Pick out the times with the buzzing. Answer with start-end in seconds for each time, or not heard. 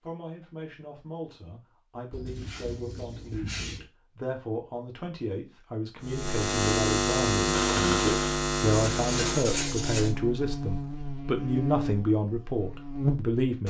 6.0-13.6.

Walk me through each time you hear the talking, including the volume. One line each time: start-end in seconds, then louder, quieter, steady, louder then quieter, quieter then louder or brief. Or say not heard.
0.0-13.6 louder.